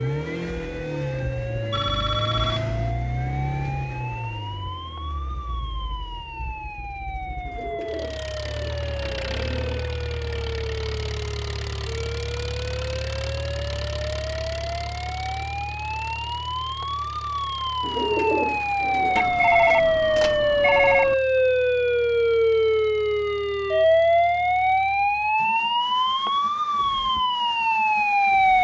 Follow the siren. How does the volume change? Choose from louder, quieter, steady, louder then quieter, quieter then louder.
louder.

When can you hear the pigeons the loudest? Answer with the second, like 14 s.
18 s.